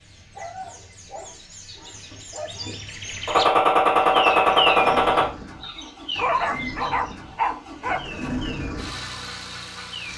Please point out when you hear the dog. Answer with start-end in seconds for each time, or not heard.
0.3-3.1, 6.2-8.0.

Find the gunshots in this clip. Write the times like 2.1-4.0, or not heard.
3.2-5.2.